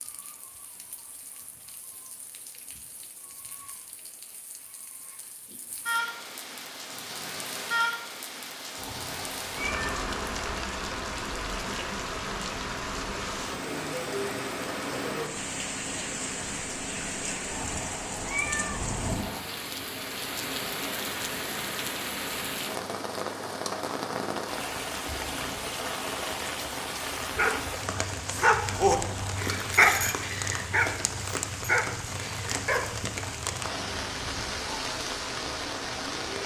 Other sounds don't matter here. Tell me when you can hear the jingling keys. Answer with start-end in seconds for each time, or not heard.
not heard.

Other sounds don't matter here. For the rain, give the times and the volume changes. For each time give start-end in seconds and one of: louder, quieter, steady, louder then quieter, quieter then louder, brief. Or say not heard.
0.0-36.4 louder.